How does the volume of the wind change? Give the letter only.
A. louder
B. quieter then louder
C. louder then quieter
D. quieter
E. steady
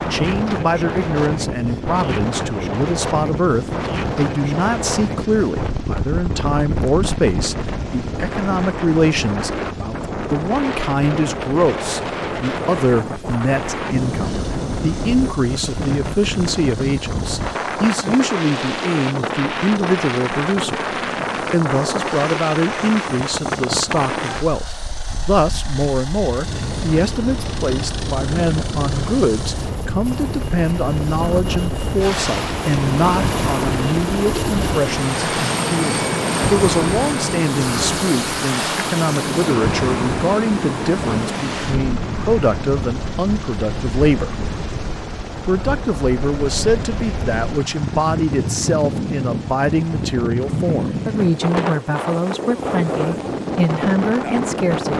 E.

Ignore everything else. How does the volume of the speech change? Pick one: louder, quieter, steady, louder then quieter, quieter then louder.
steady.